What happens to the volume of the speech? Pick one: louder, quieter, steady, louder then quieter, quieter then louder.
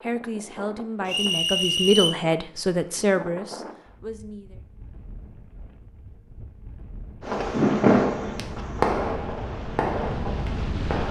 louder then quieter.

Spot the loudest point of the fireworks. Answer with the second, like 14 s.
8 s.